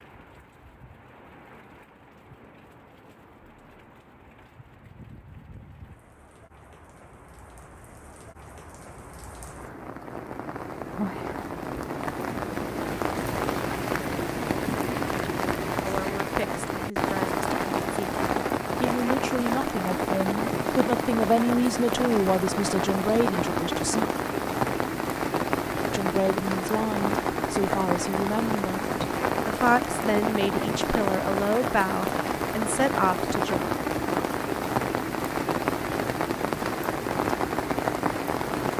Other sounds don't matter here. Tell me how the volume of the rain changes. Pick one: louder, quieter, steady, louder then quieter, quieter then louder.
louder.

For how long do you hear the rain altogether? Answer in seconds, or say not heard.
39 s.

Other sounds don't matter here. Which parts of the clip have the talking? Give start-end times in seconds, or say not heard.
15.8-24.1, 25.9-33.6.